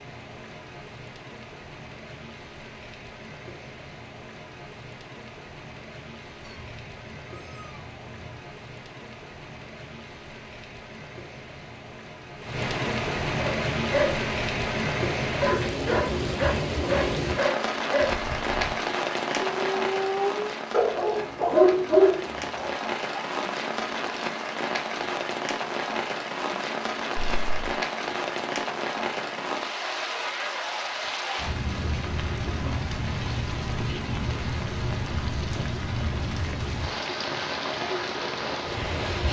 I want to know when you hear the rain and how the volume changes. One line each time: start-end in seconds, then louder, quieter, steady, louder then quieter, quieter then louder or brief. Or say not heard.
0.0-39.2 louder.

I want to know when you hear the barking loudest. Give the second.
22 s.